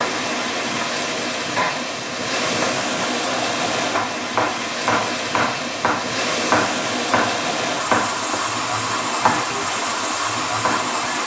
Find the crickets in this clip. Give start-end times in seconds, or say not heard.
not heard.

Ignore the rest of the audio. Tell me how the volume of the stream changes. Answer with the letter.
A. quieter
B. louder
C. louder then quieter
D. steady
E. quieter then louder
D.